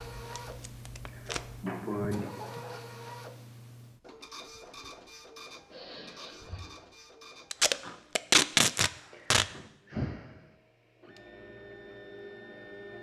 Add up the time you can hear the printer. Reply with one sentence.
The printer can be heard for 13 seconds in total.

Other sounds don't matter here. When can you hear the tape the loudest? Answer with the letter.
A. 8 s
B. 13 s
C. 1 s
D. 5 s
A.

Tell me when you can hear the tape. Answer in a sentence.
The tape can be heard from 0.1 to 1.6 s and from 7.5 to 9.4 s.